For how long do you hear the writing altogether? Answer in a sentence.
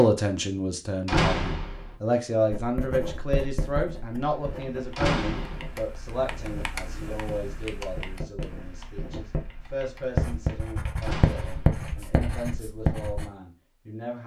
You can hear the writing for 11 seconds altogether.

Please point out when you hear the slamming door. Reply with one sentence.
The slamming door can be heard from 1.1 to 1.9 s, from 5.0 to 5.8 s and from 11.0 to 11.8 s.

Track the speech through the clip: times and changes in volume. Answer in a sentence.
The speech can be heard from 0.0 to 14.2 s, getting quieter.